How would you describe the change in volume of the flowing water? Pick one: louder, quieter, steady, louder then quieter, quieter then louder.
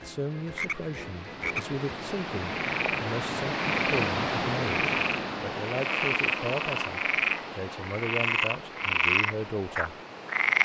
louder then quieter.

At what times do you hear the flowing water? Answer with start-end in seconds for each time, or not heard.
0.0-10.5.